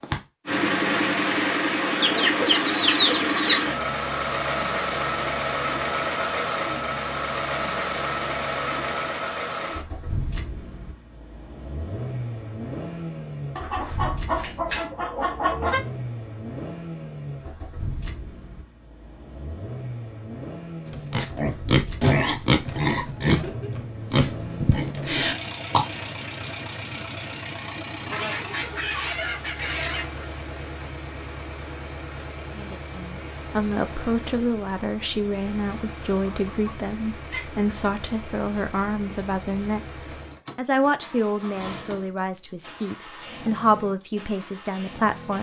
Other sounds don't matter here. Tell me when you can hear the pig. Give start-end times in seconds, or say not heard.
20.9-25.9.